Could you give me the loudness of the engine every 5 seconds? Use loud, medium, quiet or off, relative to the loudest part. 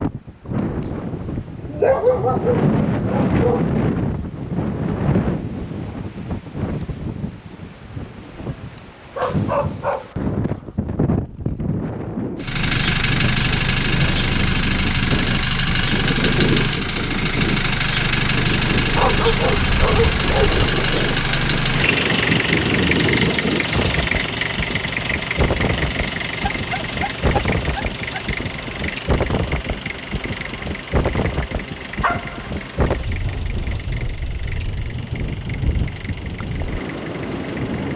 off, off, loud, loud, loud, medium, quiet, quiet.